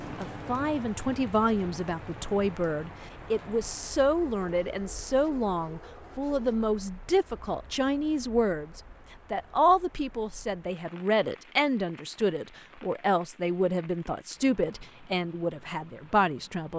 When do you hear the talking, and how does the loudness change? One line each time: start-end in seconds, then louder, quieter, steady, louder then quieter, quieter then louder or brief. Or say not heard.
0.0-16.7 steady.